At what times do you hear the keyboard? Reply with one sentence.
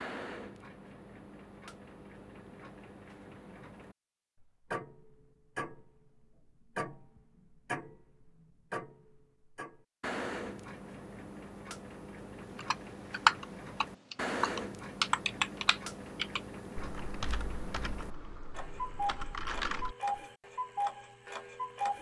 You can hear the keyboard from 12.6 to 20.2 s.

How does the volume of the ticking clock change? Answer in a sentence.
The volume of the ticking clock goes up.